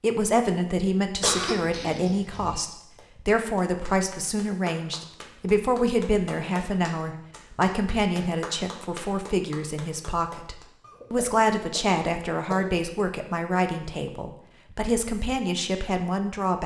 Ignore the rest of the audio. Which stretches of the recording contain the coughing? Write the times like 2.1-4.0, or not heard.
1.2-2.6, 10.8-12.8.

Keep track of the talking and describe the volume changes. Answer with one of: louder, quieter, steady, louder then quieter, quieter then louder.
steady.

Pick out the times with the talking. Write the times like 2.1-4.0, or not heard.
0.0-16.6.